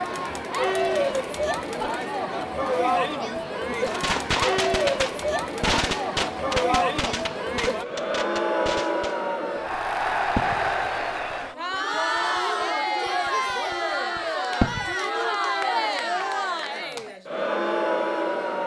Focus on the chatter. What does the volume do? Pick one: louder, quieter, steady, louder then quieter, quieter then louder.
steady.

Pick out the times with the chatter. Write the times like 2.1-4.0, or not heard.
0.0-18.6.